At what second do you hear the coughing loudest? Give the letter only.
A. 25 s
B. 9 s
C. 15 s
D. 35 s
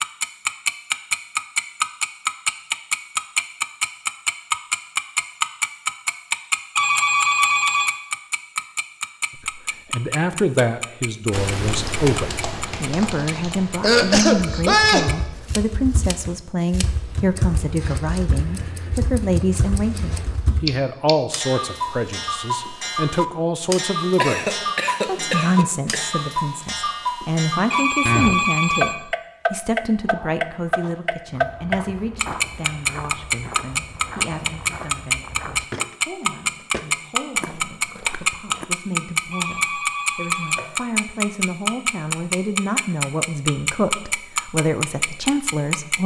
C.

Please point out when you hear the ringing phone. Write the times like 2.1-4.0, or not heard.
6.8-8.0, 27.7-28.9, 39.3-40.7.